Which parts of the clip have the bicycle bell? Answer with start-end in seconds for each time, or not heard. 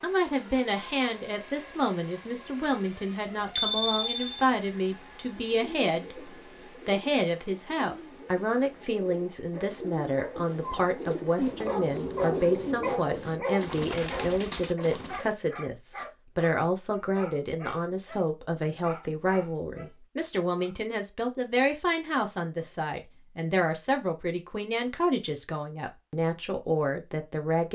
3.5-4.4.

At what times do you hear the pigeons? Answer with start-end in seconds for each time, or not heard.
5.3-15.3.